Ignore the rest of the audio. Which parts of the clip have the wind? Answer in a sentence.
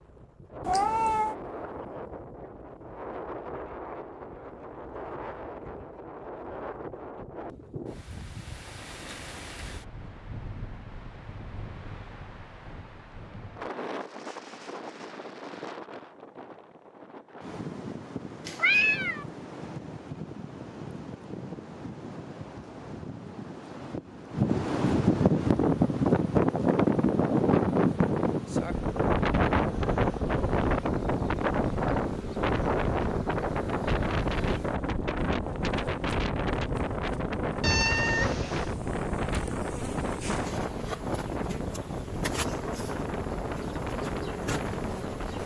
The wind can be heard from 0.0 to 45.4 s.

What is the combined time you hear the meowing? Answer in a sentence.
You can hear the meowing for 3 seconds altogether.